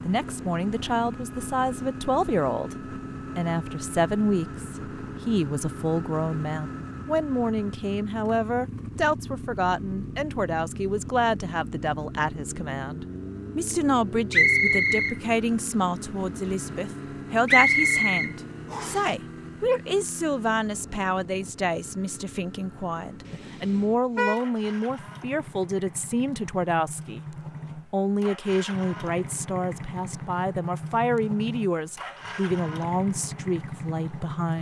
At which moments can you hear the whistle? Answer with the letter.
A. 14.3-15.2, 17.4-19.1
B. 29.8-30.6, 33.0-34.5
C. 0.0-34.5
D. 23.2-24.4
A.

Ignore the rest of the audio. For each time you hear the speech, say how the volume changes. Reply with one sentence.
The speech can be heard from 0.0 to 34.5 s, at a steady volume.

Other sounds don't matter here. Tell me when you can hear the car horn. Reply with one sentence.
The car horn can be heard from 23.2 to 24.4 s.